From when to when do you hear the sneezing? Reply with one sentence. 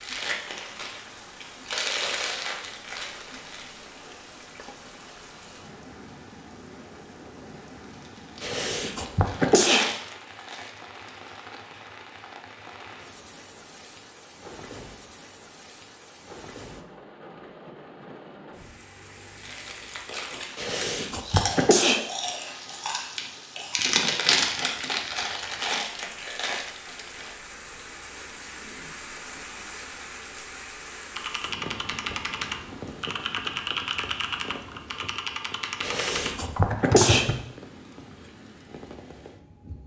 You can hear the sneezing from 8.4 to 9.8 s, from 20.6 to 22.1 s and from 35.8 to 37.3 s.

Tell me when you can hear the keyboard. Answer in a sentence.
The keyboard can be heard from 31.1 to 37.4 s.